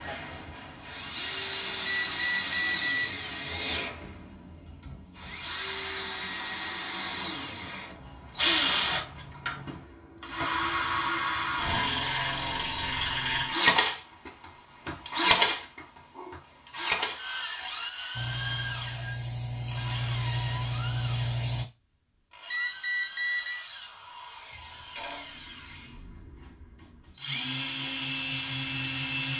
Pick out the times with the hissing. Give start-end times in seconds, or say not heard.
18.1-21.6.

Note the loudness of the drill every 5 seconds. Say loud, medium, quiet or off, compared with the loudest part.
medium, loud, loud, loud, quiet, medium.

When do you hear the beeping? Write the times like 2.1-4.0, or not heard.
1.9-3.1, 22.5-23.6.